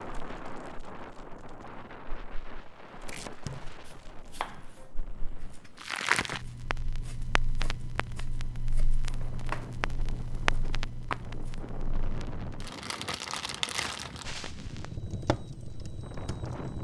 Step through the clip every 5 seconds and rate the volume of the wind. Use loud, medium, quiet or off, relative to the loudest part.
loud, medium, loud, loud.